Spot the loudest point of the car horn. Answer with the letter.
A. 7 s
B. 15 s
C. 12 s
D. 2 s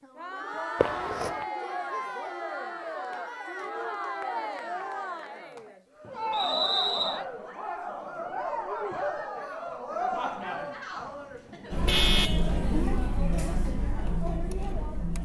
C.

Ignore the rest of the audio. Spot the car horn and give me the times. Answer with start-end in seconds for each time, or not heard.
0.8-1.4, 11.7-12.5.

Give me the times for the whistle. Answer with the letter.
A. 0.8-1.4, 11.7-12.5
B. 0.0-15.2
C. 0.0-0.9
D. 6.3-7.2
D.